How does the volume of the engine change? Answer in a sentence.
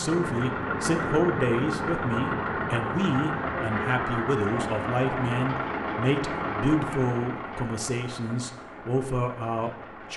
The loudness of the engine goes down.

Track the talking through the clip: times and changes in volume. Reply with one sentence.
You can hear the talking from 0.0 to 10.1 s, at a steady volume.